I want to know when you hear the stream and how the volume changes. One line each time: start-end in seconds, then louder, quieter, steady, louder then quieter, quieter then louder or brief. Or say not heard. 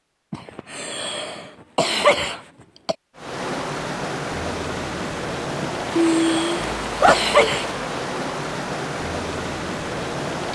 3.1-10.4 steady.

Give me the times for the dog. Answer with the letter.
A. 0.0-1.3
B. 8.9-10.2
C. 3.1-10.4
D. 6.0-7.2
D.